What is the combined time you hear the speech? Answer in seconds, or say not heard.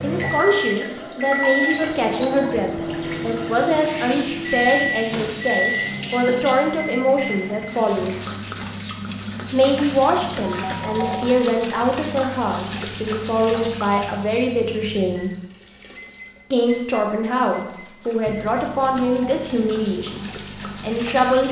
19 s.